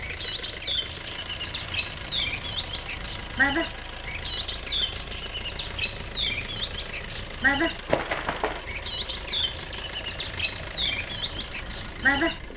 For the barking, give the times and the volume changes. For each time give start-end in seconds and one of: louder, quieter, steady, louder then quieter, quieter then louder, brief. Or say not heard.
not heard.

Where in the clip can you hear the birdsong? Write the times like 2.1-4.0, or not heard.
0.0-12.4.